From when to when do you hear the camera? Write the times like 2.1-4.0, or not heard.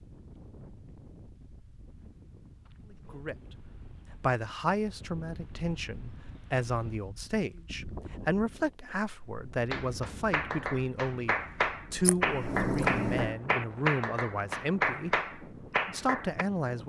12.0-13.3.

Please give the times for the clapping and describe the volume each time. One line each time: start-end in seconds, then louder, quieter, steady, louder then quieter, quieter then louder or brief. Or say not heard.
8.8-16.4 louder.